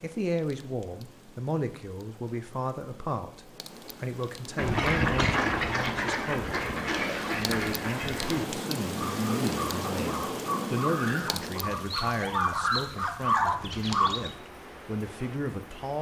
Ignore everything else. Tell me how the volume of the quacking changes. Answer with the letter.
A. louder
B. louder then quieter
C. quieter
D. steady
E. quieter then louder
E.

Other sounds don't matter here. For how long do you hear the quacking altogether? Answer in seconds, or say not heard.
10 s.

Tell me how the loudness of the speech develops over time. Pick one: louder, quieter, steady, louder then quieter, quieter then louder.
steady.